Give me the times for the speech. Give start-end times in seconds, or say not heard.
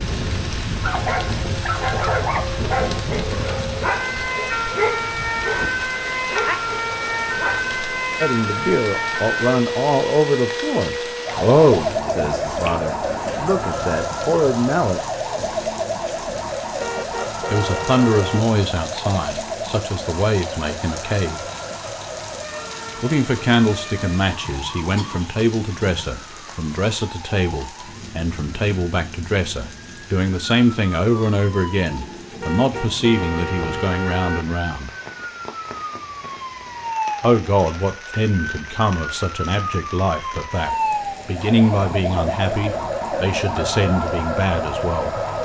8.2-15.1, 17.5-21.4, 23.0-34.9, 37.2-45.1.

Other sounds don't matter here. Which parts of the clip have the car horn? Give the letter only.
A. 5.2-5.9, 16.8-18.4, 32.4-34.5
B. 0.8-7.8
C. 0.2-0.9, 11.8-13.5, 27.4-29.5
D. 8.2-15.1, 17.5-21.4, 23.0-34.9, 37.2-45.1
A.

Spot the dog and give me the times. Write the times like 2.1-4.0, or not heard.
0.8-7.8.